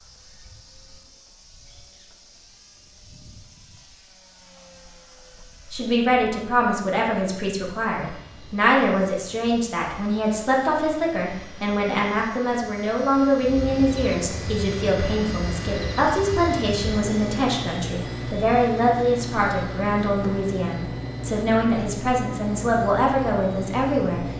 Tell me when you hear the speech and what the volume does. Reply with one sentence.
You can hear the speech from 5.7 to 24.3 s, at a steady volume.